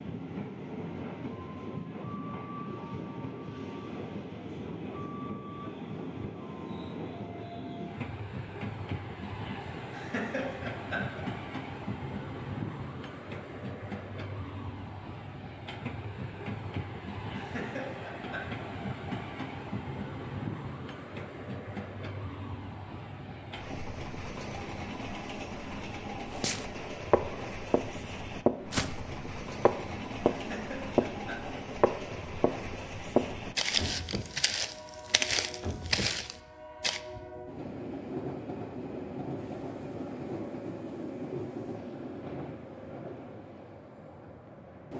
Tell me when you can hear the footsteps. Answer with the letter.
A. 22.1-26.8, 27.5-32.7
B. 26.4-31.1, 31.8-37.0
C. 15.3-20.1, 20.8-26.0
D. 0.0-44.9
B.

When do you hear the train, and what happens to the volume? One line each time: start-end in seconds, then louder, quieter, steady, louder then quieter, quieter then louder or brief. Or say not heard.
0.0-44.9 steady.